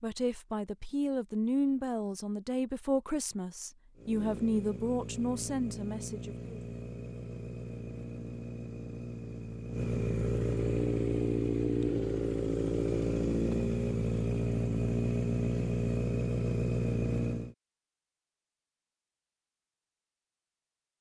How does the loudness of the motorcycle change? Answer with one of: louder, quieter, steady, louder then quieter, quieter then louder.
louder.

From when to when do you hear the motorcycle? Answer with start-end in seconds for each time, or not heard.
4.0-17.6.